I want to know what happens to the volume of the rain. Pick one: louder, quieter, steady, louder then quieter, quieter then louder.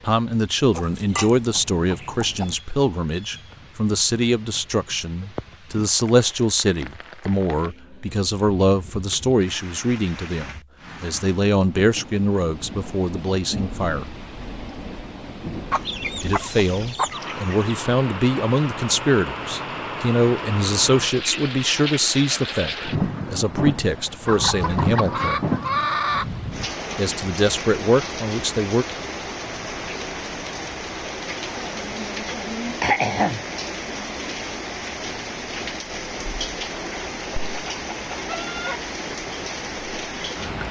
louder.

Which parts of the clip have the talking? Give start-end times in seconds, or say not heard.
0.0-14.2, 16.2-25.4, 26.9-28.9.